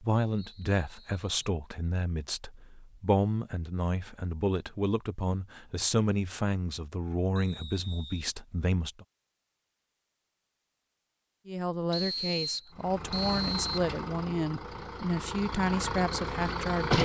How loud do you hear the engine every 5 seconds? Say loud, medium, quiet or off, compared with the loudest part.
off, off, medium, loud.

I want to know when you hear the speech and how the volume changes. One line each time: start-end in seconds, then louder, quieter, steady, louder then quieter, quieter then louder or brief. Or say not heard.
0.0-9.1 steady
11.4-16.9 steady.